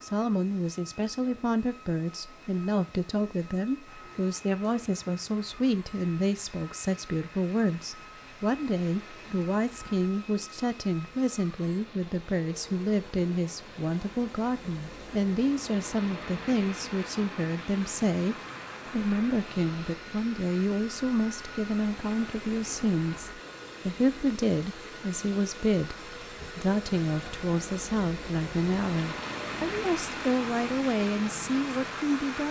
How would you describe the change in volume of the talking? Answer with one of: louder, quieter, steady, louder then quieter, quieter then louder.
steady.